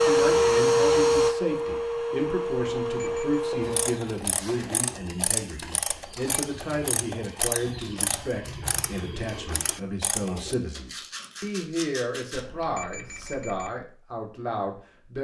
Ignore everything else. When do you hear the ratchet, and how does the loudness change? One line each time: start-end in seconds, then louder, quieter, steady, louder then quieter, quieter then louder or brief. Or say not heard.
3.6-10.6 steady.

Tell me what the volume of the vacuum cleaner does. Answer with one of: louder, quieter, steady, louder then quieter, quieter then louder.
quieter.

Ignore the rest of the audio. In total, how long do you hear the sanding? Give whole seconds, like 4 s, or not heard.
2 s.